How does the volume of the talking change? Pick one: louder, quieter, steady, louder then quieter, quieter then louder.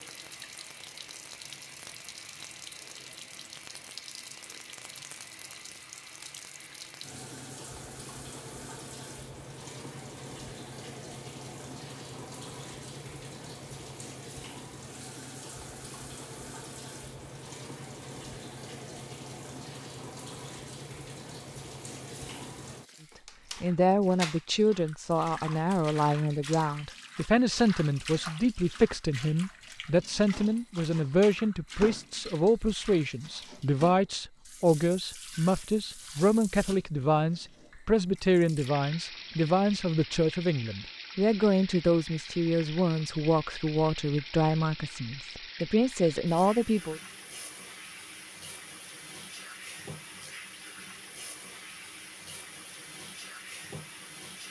steady.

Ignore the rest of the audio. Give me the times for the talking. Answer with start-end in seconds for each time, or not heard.
23.6-47.0.